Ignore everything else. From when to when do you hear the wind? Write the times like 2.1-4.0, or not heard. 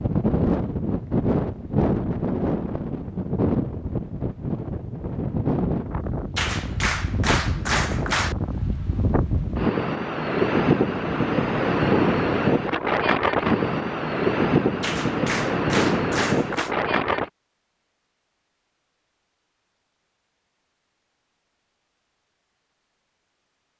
0.0-17.3.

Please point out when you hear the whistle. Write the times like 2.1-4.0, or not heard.
not heard.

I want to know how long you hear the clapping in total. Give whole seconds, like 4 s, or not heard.
4 s.